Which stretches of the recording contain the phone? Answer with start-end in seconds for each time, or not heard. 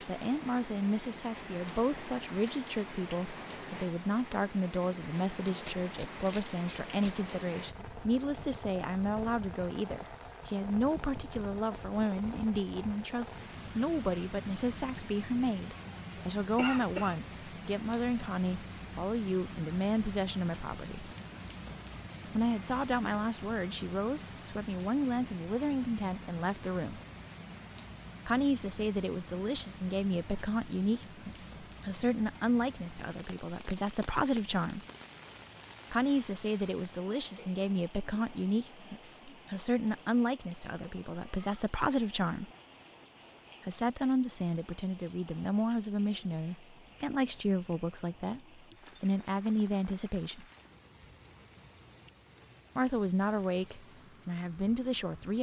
not heard.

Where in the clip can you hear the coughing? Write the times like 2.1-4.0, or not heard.
16.6-17.1.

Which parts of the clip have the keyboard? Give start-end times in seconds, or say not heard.
not heard.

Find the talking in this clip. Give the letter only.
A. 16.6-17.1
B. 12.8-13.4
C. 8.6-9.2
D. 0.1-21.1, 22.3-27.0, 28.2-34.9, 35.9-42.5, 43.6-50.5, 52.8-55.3
D.